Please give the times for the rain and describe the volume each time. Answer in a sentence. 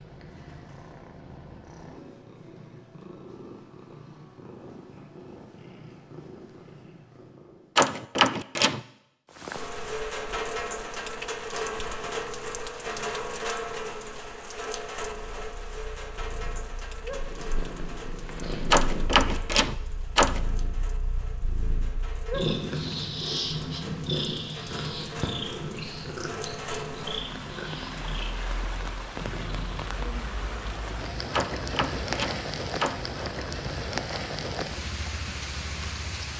You can hear the rain from 9.2 to 36.3 s, getting quieter then louder.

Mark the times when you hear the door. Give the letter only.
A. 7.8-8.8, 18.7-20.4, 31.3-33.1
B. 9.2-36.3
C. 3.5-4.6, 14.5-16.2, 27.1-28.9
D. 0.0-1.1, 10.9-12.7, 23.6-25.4
A.